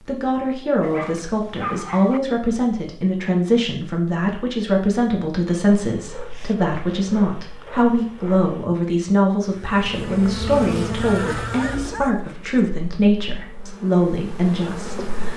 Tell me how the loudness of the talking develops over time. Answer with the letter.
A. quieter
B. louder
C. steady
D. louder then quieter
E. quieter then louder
C.